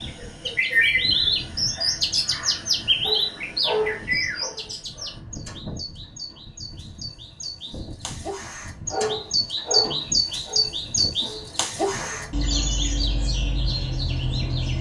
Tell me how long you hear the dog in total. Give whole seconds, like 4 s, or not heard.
6 s.